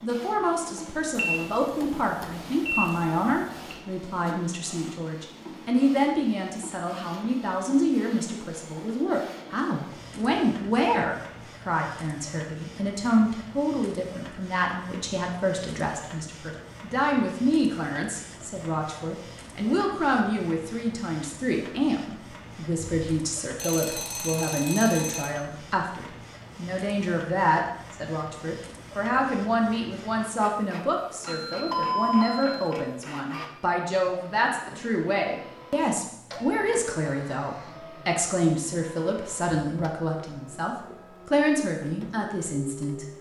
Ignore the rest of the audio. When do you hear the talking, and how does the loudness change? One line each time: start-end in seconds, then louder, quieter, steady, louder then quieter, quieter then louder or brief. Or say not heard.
0.0-43.1 steady.